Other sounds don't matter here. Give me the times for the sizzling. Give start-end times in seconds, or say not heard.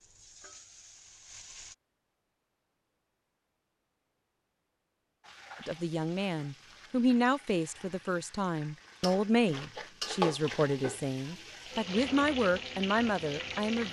0.0-1.8, 5.2-13.8.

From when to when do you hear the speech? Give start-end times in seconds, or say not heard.
5.6-13.8.